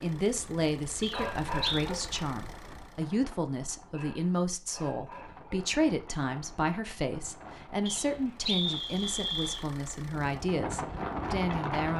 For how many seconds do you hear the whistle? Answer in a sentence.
The whistle can be heard for 3 seconds in total.